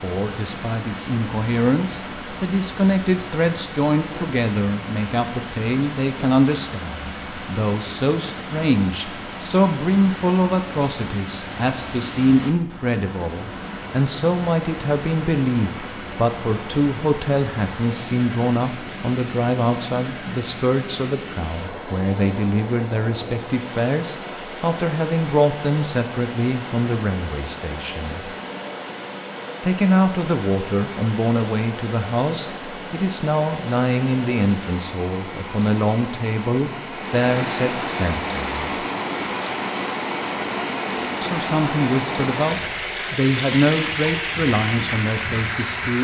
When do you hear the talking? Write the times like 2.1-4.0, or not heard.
0.0-28.3, 29.6-38.8, 41.2-45.9.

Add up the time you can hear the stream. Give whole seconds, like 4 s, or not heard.
46 s.